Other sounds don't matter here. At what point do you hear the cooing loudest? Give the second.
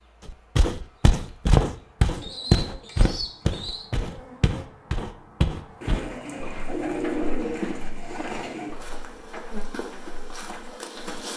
7 s.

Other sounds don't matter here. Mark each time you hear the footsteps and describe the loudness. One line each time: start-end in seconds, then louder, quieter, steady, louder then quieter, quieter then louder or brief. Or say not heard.
0.2-11.2 quieter.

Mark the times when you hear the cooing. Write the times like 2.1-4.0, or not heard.
2.0-3.9, 5.8-8.8.